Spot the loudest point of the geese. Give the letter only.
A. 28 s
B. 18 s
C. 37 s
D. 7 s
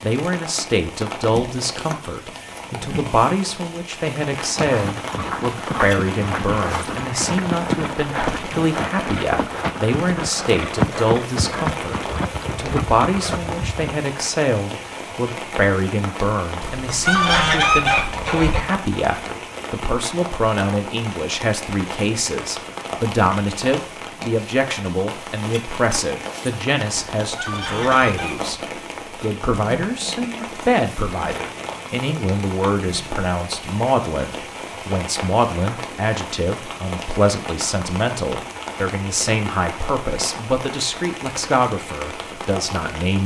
B.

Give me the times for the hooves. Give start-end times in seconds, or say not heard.
4.3-14.0.